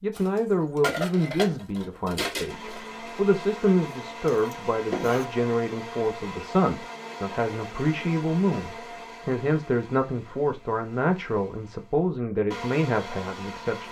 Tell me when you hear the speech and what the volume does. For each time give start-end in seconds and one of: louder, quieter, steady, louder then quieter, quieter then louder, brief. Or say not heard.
0.0-13.8 steady.